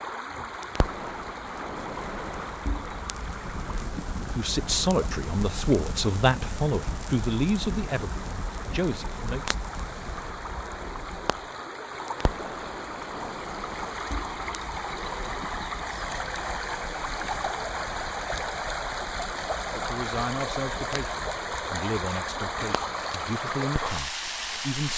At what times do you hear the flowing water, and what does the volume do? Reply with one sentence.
You can hear the flowing water from 0.0 to 24.9 s, getting louder.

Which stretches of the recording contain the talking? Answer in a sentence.
You can hear the talking from 4.2 to 9.6 s and from 19.7 to 24.9 s.